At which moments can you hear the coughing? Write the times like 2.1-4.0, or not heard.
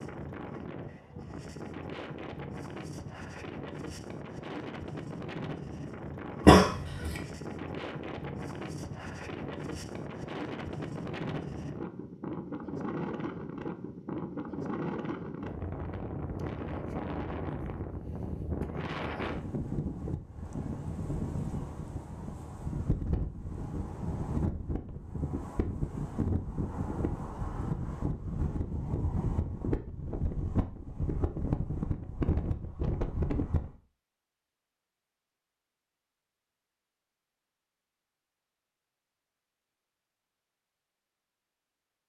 6.5-7.2.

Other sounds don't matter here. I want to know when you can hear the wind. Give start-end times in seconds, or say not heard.
0.0-33.8.